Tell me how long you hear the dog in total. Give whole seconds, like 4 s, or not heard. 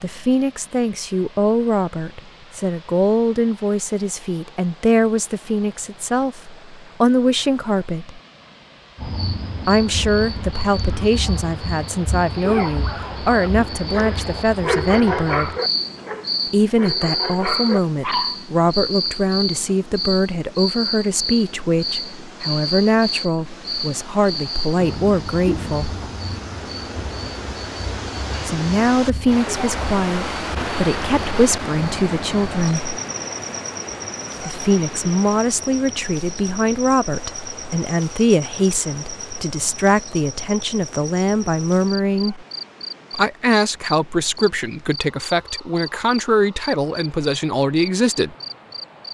6 s.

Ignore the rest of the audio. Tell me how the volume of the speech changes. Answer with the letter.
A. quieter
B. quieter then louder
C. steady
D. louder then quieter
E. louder
C.